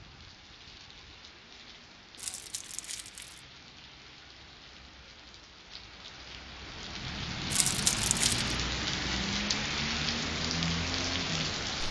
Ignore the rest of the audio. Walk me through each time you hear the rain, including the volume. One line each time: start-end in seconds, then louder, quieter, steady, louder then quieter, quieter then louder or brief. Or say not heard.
0.0-11.8 louder.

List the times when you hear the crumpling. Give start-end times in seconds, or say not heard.
2.1-3.4, 7.5-8.6.